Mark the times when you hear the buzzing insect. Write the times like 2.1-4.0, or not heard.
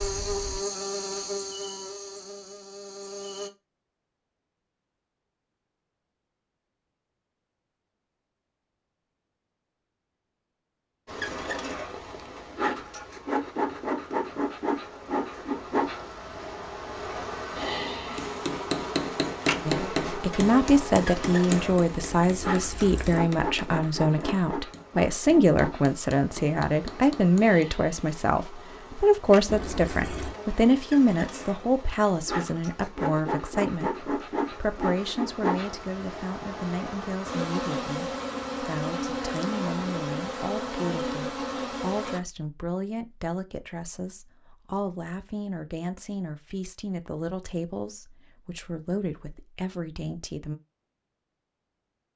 0.0-3.5, 11.1-42.2.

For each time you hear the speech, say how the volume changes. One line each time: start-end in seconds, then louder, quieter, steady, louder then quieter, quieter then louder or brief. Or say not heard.
19.6-50.5 quieter.